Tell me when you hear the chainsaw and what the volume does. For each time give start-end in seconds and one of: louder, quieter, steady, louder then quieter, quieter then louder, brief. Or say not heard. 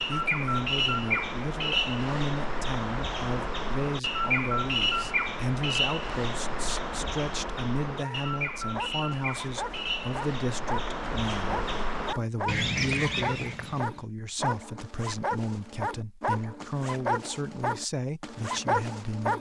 not heard.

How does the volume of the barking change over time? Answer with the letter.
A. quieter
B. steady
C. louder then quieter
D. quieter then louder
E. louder
E.